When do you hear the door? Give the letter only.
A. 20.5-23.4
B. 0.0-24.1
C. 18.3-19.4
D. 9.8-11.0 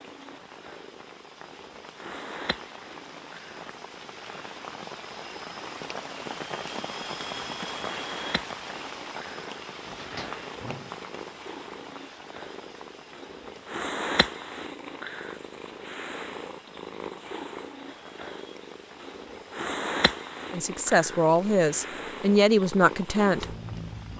D.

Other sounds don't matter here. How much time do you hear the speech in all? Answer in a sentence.
You can hear the speech for 3 seconds altogether.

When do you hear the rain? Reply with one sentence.
You can hear the rain from 0.0 to 24.1 s.